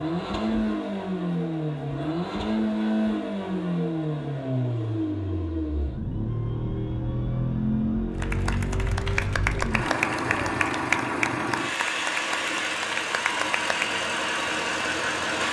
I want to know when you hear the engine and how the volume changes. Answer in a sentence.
You can hear the engine from 0.0 to 15.4 s, at a steady volume.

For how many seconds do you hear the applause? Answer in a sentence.
You can hear the applause for 6 seconds altogether.